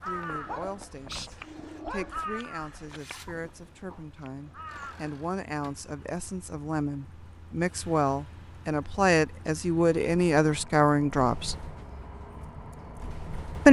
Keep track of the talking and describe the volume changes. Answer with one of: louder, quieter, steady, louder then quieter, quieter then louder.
louder.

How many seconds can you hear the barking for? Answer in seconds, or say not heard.
2 s.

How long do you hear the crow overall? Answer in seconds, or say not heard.
5 s.